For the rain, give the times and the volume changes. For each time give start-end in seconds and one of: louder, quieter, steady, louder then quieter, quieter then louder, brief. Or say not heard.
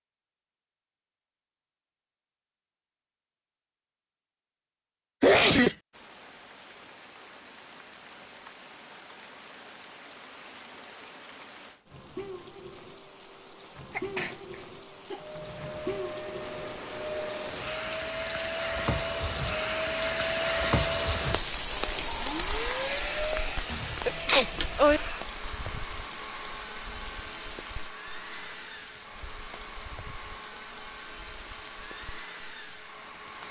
5.9-33.4 louder then quieter.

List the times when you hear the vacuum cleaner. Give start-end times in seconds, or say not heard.
15.2-33.4.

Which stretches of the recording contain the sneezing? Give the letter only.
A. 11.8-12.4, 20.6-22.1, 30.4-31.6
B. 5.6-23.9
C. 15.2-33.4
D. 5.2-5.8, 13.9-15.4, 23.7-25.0
D.